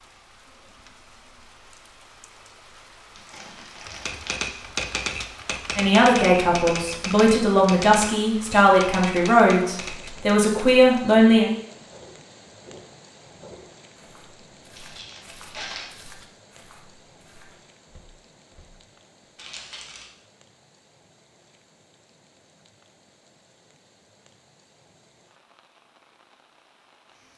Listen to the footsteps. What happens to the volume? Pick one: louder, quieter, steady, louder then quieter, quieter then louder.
quieter.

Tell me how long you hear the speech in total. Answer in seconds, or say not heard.
6 s.